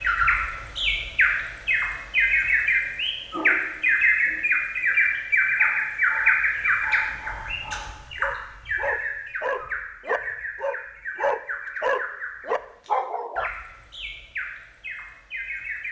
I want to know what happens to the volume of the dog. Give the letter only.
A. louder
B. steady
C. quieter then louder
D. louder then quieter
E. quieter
A.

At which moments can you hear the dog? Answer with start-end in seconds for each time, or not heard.
2.8-13.5.